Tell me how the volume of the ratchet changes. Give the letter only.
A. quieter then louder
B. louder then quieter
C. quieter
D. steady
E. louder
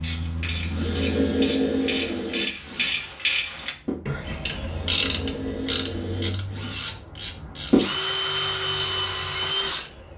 B.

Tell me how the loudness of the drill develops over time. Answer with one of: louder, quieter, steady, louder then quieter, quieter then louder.
quieter then louder.